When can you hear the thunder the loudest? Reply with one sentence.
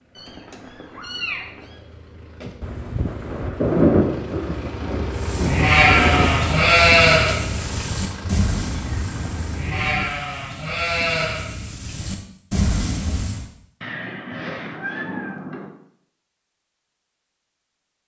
The loudest moment of the thunder is at 4 seconds.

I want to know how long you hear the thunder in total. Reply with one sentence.
The thunder can be heard for 4 seconds in total.